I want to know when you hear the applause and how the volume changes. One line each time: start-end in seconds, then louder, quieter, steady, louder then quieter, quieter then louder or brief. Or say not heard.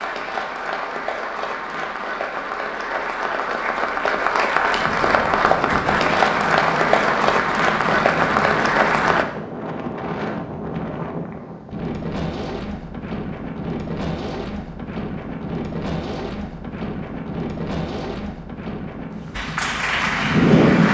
0.0-9.2 louder
19.4-20.9 brief.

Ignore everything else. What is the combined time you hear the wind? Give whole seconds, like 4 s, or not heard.
16 s.